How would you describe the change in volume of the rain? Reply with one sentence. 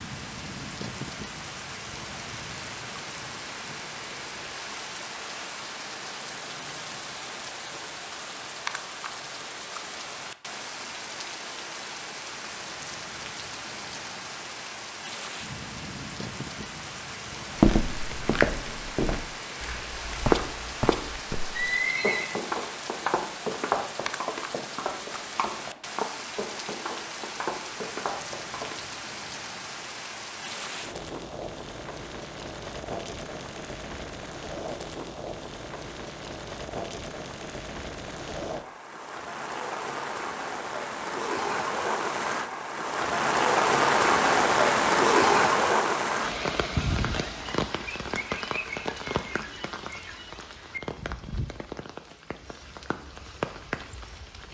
The loudness of the rain goes up.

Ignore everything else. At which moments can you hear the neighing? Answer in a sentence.
You can hear the neighing from 21.6 to 22.3 s.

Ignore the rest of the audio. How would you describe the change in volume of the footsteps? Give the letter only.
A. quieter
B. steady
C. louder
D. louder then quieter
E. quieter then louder
A.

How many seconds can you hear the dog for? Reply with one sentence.
The dog can't be heard in this clip.